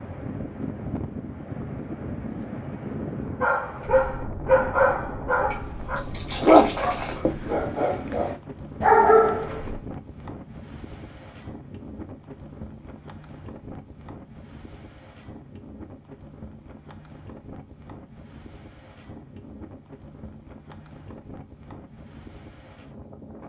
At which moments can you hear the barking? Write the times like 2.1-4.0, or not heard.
3.4-9.8.